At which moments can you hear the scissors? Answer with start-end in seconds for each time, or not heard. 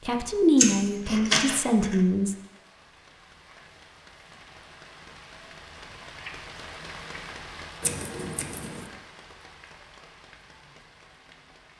0.6-1.9, 7.8-8.8.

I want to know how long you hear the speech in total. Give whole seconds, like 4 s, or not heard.
2 s.